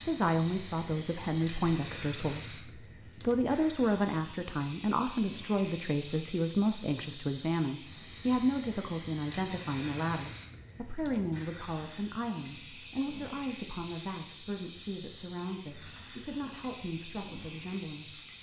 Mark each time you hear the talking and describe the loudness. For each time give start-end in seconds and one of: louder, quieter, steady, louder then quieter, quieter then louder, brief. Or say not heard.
0.0-18.2 quieter.